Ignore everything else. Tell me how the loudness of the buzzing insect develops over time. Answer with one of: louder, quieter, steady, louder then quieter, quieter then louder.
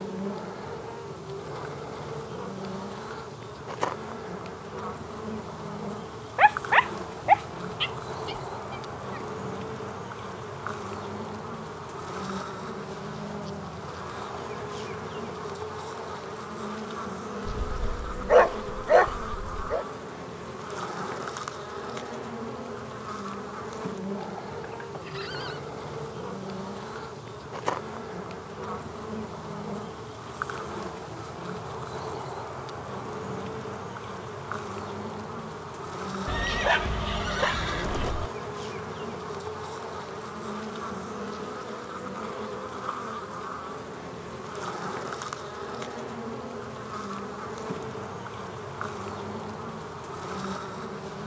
steady.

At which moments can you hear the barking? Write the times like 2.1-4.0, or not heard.
6.3-9.2, 17.4-19.9, 36.2-38.1.